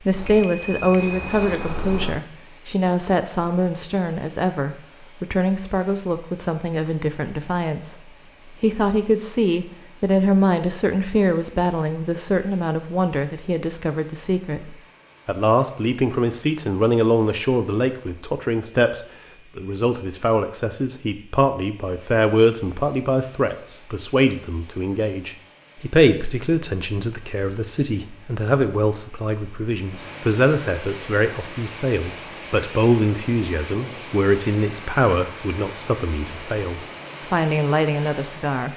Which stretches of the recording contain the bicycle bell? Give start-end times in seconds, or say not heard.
0.1-2.1.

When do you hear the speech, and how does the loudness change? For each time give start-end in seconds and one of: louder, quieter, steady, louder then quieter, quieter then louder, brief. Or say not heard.
0.1-38.7 steady.